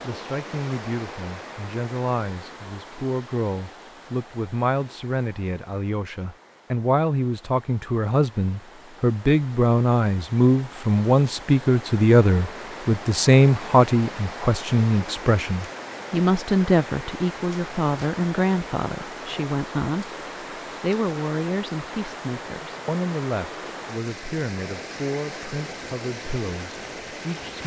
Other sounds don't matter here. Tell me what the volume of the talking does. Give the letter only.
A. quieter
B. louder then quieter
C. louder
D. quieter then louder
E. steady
B.